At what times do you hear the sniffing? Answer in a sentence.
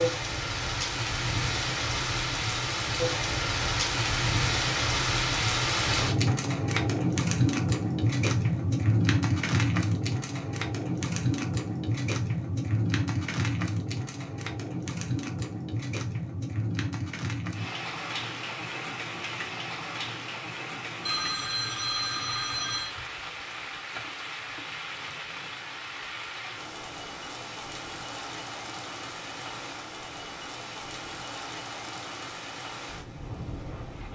You can't hear the sniffing here.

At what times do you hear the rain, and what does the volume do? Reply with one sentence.
You can hear the rain from 0.0 to 34.0 s, getting quieter.